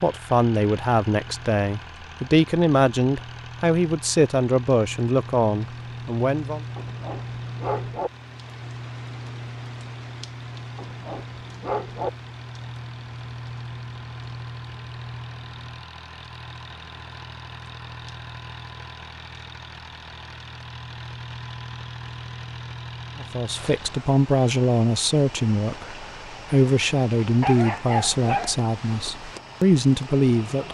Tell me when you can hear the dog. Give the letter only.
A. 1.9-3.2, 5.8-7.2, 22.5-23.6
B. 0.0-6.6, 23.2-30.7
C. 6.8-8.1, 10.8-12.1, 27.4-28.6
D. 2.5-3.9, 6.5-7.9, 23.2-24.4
C.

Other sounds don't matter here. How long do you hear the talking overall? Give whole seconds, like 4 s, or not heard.
14 s.